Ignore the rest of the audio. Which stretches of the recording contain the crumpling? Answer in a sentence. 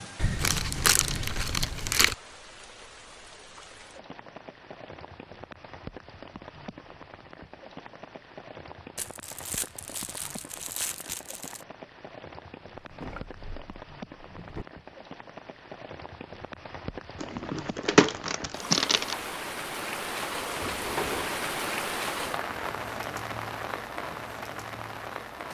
The crumpling can be heard from 0.1 to 2.1 s, from 8.9 to 11.7 s and from 17.2 to 19.1 s.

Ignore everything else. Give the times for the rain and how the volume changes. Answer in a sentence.
The rain can be heard from 0.0 to 25.4 s, getting louder.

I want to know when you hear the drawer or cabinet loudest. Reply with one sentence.
The loudest moment of the drawer or cabinet is at 21 seconds.